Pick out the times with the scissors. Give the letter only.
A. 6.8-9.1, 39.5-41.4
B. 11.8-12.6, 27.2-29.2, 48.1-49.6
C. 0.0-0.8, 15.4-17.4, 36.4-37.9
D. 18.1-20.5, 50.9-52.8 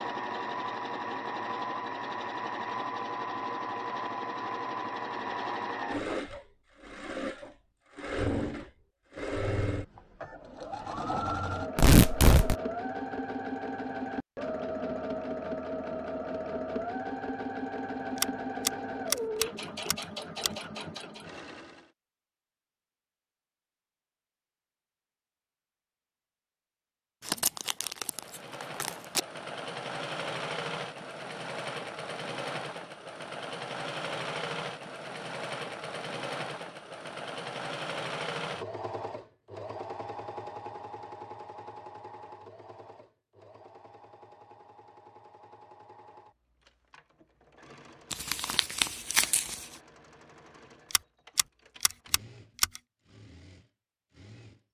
D.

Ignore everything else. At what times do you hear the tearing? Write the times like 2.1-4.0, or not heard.
11.8-12.6, 27.2-29.2, 48.1-49.6.